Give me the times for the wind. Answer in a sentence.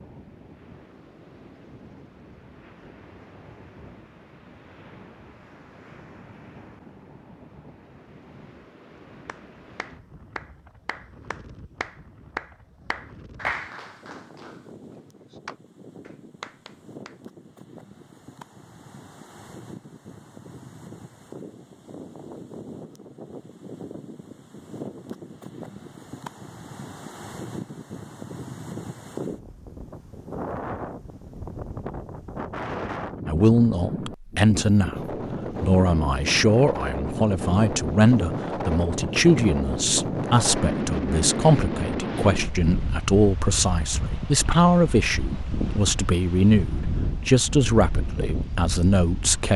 You can hear the wind from 0.0 to 49.5 s.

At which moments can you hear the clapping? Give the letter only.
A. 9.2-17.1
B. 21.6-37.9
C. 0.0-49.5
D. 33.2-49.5
A.